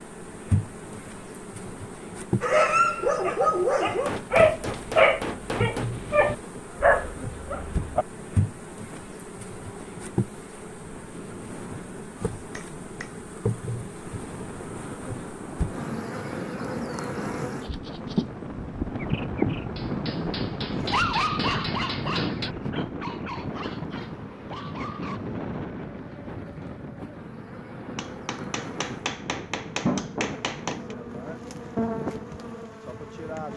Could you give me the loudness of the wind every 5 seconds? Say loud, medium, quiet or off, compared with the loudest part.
quiet, quiet, medium, loud, loud, medium, medium.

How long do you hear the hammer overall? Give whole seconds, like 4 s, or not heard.
8 s.